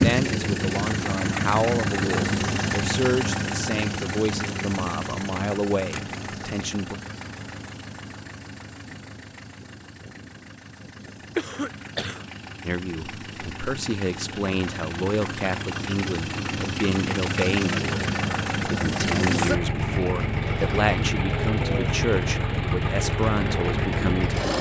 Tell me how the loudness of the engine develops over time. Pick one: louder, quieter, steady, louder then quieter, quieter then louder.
quieter then louder.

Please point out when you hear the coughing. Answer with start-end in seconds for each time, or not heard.
11.3-12.2.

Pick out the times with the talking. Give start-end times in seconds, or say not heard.
0.0-7.0, 12.7-24.5.